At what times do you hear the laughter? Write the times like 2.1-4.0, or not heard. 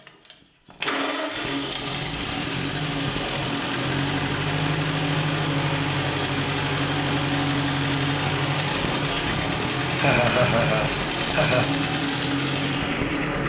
9.9-11.7.